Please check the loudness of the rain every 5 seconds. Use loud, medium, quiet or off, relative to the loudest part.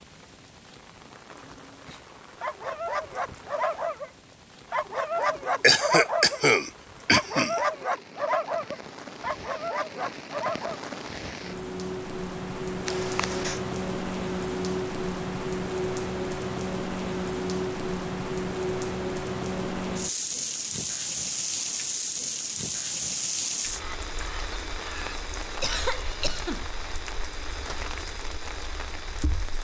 quiet, quiet, loud, loud, loud, medium.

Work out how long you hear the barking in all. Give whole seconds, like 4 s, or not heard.
7 s.